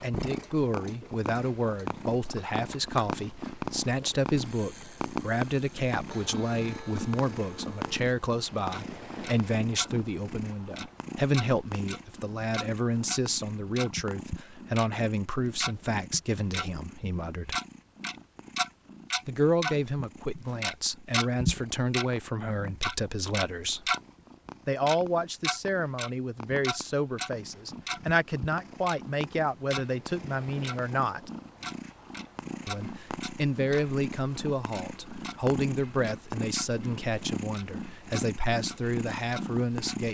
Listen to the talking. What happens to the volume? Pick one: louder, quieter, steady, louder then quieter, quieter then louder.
steady.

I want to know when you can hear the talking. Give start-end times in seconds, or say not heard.
0.0-17.6, 19.2-23.9, 24.6-31.3, 32.6-40.0.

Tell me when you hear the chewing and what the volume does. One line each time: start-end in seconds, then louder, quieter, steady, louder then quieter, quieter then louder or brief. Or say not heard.
not heard.